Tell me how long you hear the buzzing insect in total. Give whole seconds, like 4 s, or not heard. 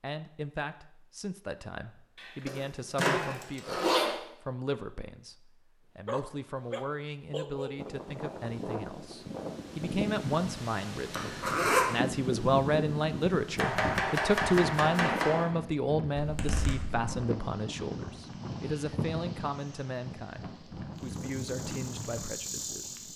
2 s.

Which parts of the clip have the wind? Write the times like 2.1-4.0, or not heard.
7.8-23.1.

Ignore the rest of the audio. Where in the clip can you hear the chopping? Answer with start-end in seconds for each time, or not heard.
13.6-15.4.